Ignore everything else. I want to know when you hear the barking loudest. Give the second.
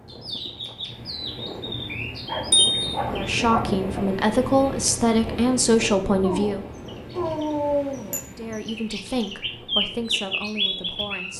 8 s.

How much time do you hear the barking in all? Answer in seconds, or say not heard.
4 s.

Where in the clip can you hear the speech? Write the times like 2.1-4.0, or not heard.
3.0-6.7, 8.2-11.3.